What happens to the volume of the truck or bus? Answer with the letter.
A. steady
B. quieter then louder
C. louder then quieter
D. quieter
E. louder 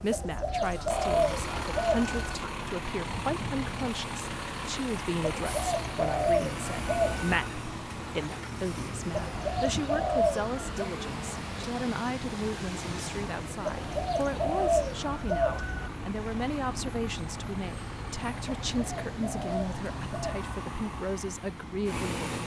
A.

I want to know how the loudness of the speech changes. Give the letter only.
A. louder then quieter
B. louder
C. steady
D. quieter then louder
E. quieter
C.